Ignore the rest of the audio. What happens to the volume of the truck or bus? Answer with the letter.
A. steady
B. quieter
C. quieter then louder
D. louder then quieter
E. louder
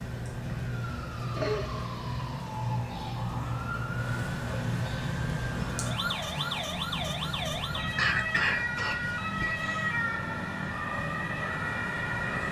A.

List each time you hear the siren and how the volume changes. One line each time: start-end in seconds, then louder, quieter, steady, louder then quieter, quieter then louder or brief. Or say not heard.
0.0-12.4 steady.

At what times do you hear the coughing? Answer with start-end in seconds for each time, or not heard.
1.4-2.2, 8.0-9.9.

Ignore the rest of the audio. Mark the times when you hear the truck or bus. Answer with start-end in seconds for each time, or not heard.
3.8-12.4.